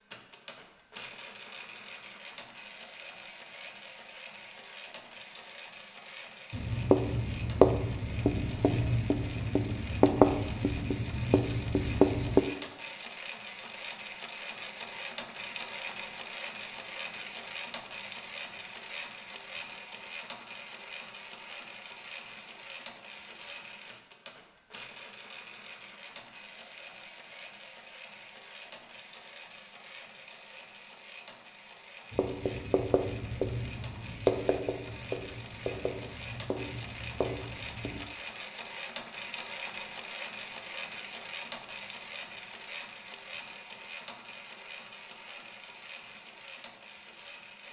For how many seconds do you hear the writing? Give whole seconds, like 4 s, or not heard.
12 s.